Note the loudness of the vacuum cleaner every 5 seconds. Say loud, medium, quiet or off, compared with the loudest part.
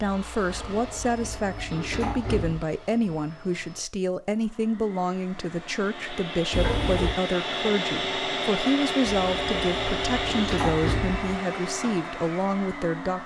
quiet, loud, loud.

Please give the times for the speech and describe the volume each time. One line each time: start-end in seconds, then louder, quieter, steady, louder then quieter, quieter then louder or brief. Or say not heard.
0.0-13.2 steady.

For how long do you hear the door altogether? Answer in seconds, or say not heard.
5 s.